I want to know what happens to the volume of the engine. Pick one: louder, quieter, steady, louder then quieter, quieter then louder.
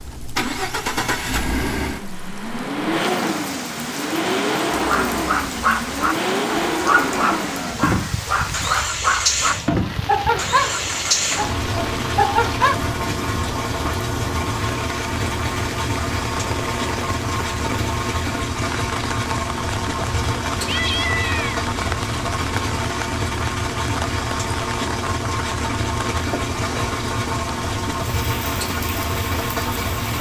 steady.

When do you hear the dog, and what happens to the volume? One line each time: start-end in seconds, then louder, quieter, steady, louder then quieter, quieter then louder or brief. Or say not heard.
4.7-12.8 steady.